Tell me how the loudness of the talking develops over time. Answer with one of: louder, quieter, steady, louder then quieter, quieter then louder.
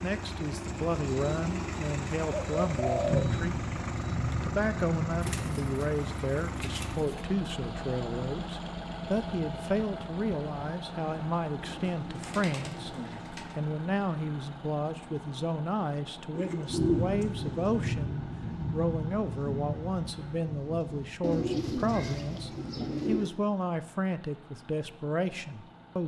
steady.